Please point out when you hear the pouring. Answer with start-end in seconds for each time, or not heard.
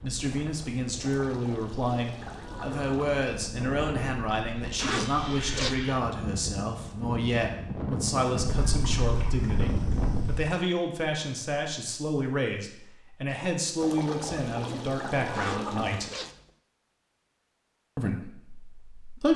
1.0-3.2, 8.4-10.4, 13.8-16.1.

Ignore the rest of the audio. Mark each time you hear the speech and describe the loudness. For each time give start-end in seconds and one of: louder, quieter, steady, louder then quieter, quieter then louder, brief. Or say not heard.
0.0-16.1 steady
17.9-19.3 brief.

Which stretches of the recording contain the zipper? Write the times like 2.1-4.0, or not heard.
4.8-5.8, 15.3-16.5.